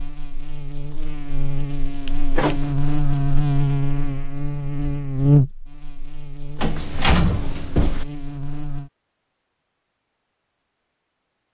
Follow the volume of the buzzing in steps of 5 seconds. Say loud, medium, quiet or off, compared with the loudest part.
loud, loud, off.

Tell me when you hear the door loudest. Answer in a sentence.
The loudest moment of the door is at 7 seconds.